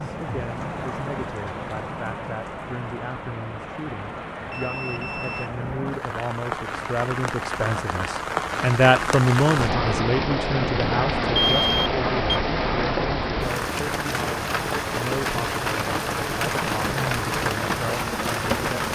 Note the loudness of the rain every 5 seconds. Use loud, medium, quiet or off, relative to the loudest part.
medium, loud, loud, loud.